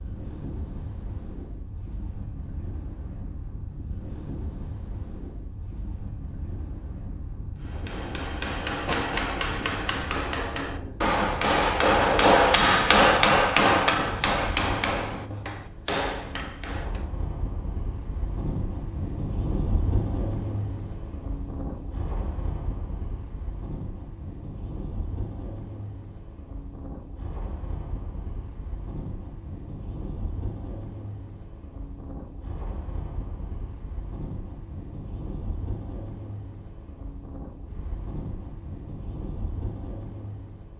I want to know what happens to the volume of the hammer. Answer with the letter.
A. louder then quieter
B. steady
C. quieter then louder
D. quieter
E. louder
A.